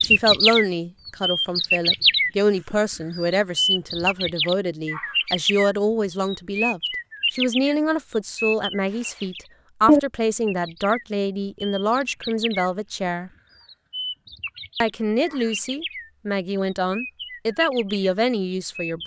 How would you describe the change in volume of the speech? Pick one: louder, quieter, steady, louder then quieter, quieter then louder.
steady.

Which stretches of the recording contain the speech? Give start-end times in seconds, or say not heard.
0.0-13.3, 14.8-19.0.